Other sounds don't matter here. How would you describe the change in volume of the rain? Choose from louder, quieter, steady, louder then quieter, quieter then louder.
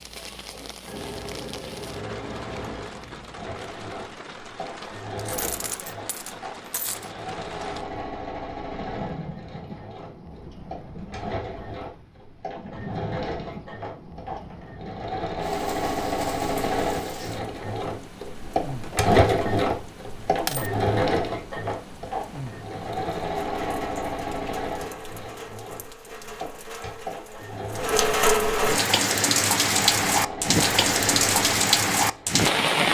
louder.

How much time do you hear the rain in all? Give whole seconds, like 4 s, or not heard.
33 s.